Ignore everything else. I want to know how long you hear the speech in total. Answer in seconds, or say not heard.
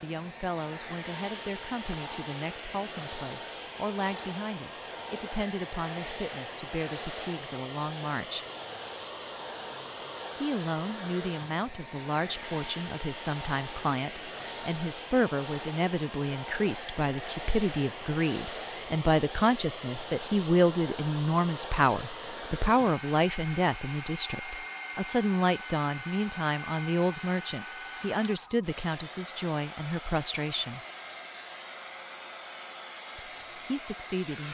30 s.